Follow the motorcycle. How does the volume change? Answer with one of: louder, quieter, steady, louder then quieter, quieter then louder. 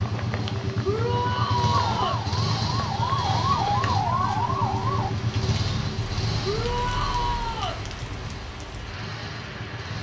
quieter.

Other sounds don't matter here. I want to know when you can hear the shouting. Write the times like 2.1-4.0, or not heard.
0.8-2.2, 6.4-7.8.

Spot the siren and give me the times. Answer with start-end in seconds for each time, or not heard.
1.7-5.2.